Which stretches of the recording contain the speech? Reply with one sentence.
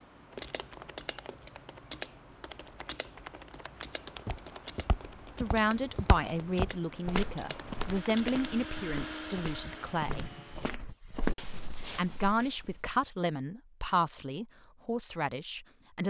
The speech can be heard from 5.3 to 10.2 s and from 11.8 to 16.0 s.